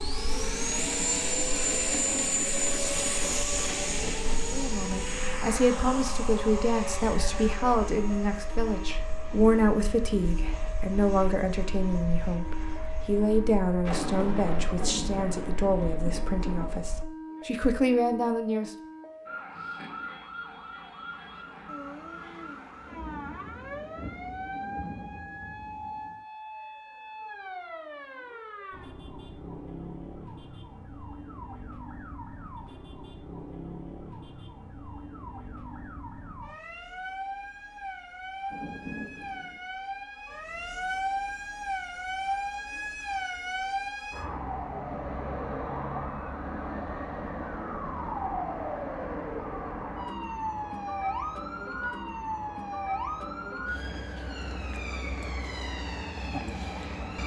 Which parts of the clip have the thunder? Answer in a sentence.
The thunder can be heard from 13.8 to 16.8 s, from 21.6 to 26.2 s and from 38.5 to 39.6 s.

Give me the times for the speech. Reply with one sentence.
The speech can be heard from 4.5 to 18.7 s.